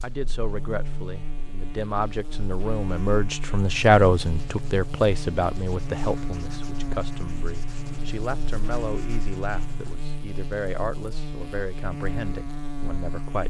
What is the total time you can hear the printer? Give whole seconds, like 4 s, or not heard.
not heard.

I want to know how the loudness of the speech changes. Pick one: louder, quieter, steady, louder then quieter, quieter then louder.
louder then quieter.